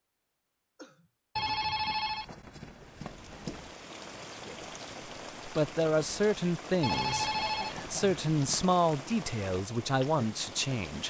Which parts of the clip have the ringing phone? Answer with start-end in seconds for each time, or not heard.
1.4-3.8, 6.8-8.7.